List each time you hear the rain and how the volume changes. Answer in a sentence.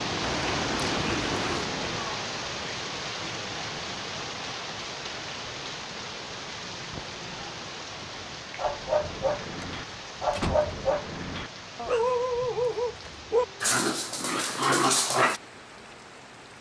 You can hear the rain from 0.0 to 16.5 s, getting quieter.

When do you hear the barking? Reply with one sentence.
The barking can be heard from 8.6 to 15.4 s.